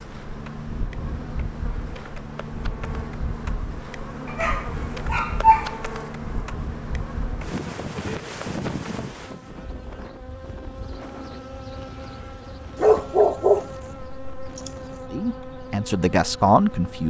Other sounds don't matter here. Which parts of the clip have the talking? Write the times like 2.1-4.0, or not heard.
15.1-17.0.